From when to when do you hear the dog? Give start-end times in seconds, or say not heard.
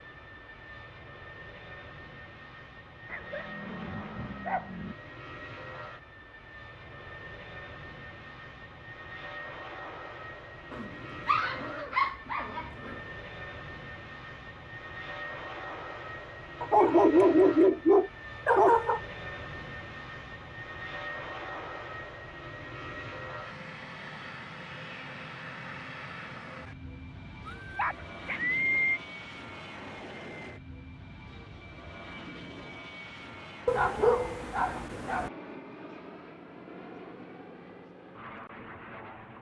3.1-5.0, 10.7-12.9, 16.6-19.0, 27.4-29.0, 33.6-35.3.